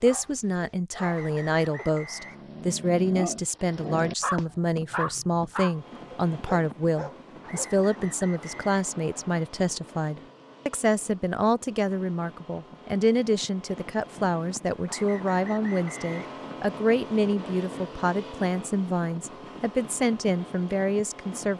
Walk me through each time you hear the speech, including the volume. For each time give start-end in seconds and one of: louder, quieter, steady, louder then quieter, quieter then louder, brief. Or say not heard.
0.0-21.5 steady.